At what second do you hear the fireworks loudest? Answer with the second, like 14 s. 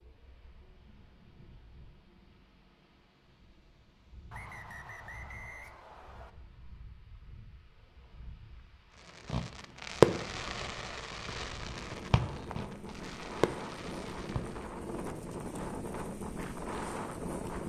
10 s.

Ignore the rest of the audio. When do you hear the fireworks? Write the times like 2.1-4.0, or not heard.
9.2-14.6.